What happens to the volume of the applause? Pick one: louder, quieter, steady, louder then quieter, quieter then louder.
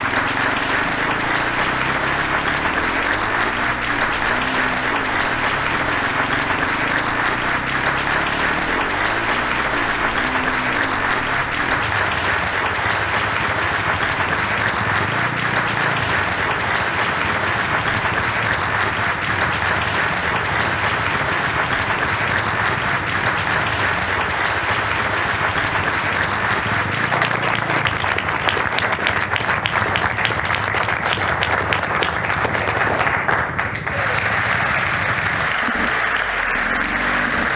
steady.